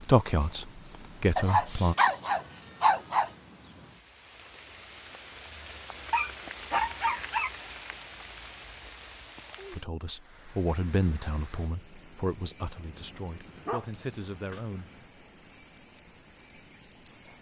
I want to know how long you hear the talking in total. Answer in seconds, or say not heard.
7 s.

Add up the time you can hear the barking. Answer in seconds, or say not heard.
6 s.